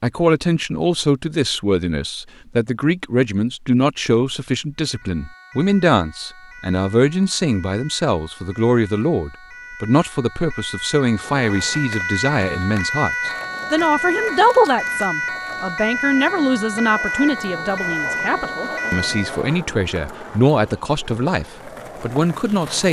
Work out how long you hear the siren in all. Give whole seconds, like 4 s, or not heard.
15 s.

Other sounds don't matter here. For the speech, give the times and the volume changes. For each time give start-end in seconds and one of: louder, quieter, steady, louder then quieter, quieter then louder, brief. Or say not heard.
0.0-22.8 steady.